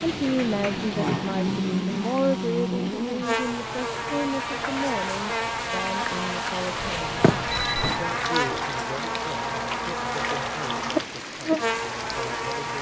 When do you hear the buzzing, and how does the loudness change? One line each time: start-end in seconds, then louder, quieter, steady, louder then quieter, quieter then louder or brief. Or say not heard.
0.0-12.7 steady.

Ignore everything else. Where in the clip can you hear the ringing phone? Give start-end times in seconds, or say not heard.
6.8-8.0.